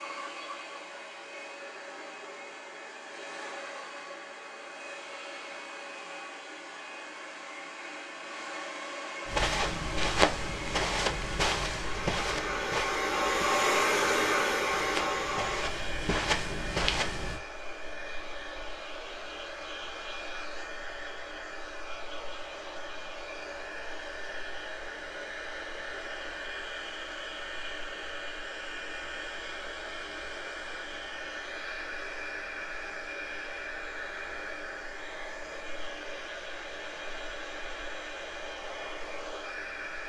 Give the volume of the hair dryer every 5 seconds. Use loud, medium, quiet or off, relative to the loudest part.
quiet, medium, loud, medium, medium, medium, medium, medium.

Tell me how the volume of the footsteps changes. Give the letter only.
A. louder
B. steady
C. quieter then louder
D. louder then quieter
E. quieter
C.